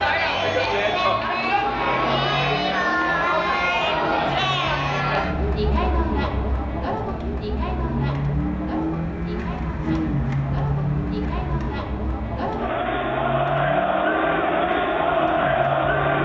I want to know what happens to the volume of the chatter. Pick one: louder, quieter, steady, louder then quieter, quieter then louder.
quieter then louder.